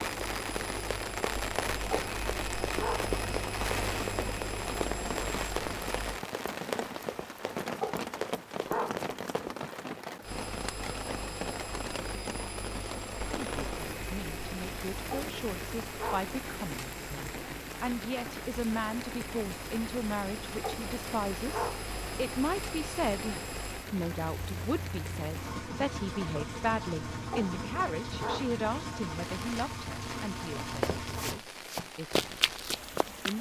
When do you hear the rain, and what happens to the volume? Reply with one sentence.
The rain can be heard from 0.0 to 33.3 s, getting quieter.